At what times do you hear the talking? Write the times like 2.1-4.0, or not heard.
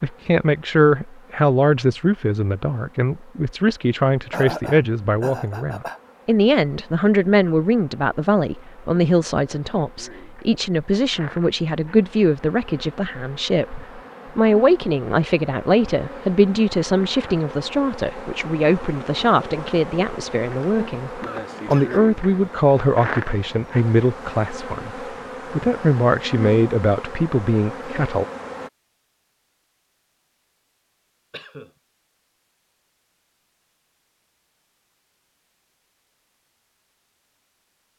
0.0-28.2.